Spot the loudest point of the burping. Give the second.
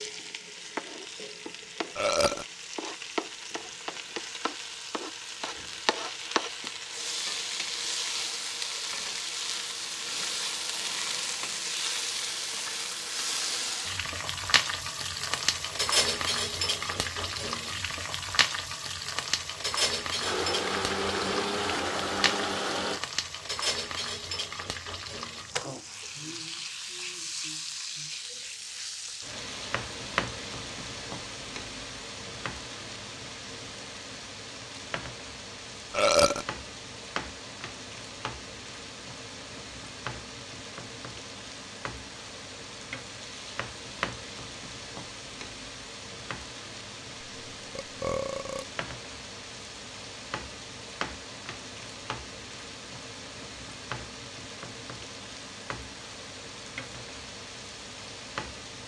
36 s.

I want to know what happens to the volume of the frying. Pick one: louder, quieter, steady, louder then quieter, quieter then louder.
quieter.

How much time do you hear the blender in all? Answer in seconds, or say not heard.
3 s.